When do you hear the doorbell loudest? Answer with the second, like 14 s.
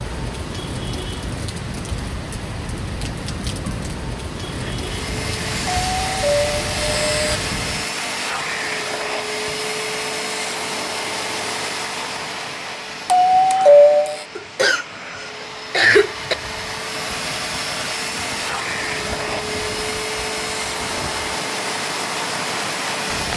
14 s.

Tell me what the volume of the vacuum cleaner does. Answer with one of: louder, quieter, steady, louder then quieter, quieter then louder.
quieter then louder.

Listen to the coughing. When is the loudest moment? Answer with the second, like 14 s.
16 s.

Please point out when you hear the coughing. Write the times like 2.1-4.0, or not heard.
14.3-16.4.